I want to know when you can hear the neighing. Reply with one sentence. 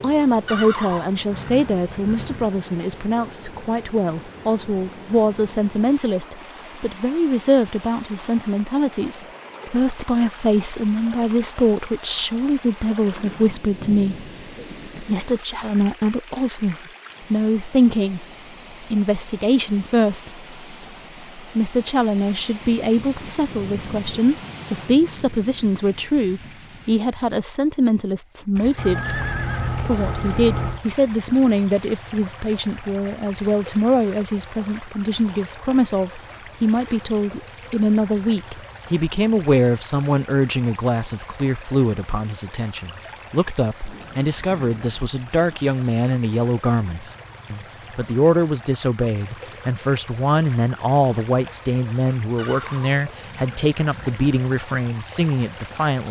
The neighing can be heard from 0.5 to 2.5 s, from 28.8 to 30.8 s and from 52.4 to 54.2 s.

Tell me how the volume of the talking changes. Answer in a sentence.
The volume of the talking stays about the same.